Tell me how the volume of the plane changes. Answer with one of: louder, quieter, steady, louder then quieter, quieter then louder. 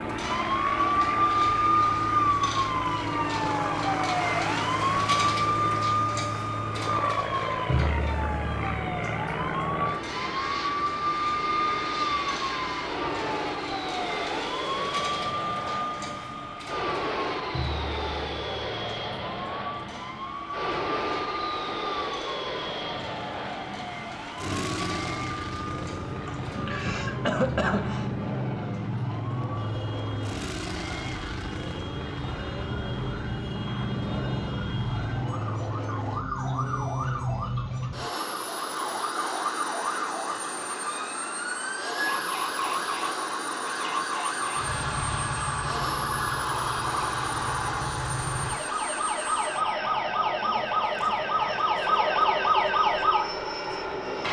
steady.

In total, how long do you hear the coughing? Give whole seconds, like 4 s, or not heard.
2 s.